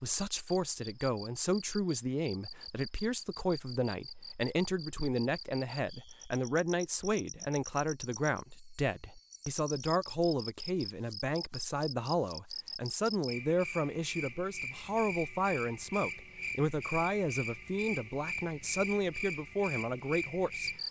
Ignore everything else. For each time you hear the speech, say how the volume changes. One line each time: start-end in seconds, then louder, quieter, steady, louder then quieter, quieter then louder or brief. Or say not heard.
0.0-20.7 steady.